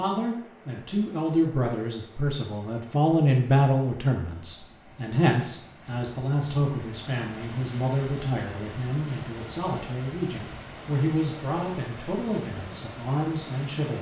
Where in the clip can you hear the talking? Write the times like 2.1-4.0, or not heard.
0.0-13.9.